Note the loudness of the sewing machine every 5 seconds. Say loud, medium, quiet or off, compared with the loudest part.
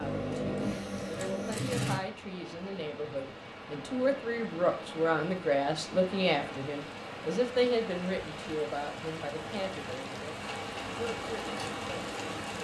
loud, off, medium.